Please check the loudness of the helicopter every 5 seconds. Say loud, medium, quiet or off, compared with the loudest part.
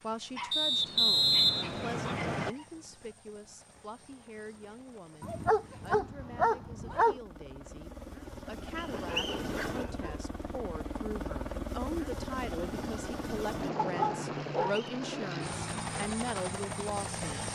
quiet, medium, loud, loud.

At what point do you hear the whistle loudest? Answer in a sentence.
The volume of the whistle peaks at 1 second.